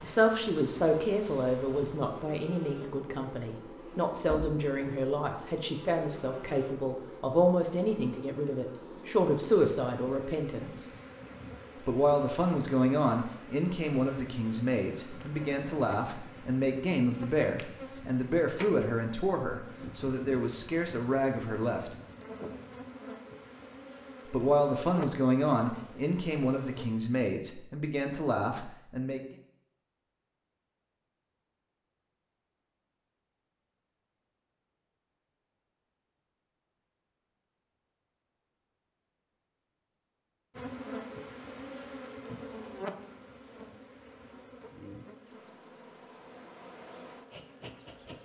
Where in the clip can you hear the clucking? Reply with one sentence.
You can't hear the clucking here.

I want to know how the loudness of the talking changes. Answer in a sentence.
The volume of the talking stays about the same.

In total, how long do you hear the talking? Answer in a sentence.
You can hear the talking for 26 seconds altogether.